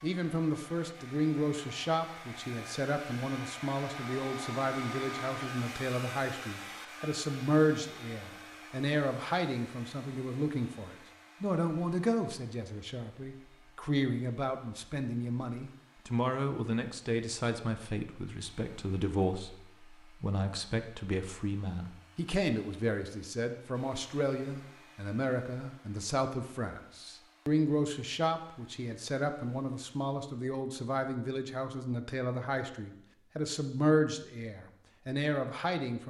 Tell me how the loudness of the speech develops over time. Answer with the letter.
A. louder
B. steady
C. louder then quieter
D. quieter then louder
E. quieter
B.